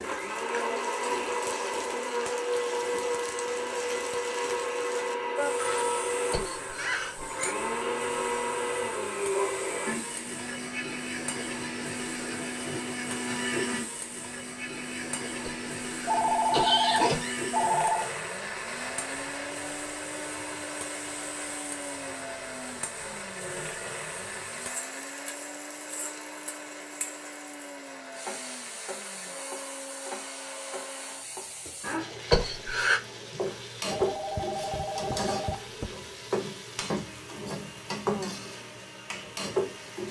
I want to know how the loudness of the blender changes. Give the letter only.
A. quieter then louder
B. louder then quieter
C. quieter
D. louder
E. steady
C.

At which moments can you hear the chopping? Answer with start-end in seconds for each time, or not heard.
not heard.